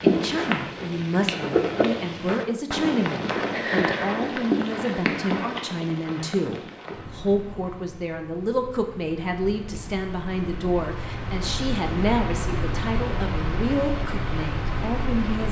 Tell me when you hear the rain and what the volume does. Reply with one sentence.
The rain can be heard from 0.0 to 15.4 s, getting quieter then louder.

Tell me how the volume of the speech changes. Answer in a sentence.
The volume of the speech stays about the same.